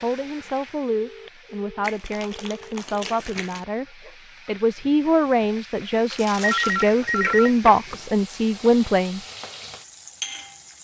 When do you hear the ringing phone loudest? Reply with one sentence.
The loudest moment of the ringing phone is at 7 seconds.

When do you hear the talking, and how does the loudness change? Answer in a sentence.
You can hear the talking from 0.0 to 9.2 s, getting louder.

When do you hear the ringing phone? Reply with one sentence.
You can hear the ringing phone from 0.9 to 3.0 s and from 6.4 to 8.0 s.